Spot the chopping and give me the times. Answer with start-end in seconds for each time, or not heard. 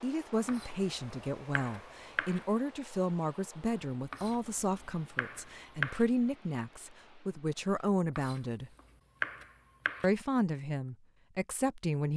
0.5-2.5, 4.1-6.0, 8.2-10.1.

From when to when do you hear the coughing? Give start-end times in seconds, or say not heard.
not heard.